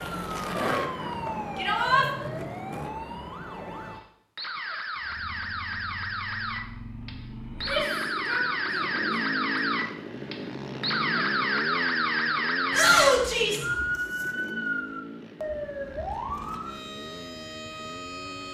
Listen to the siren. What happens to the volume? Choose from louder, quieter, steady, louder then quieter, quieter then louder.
louder then quieter.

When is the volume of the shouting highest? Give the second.
13 s.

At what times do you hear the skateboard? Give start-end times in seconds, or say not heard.
0.0-2.9.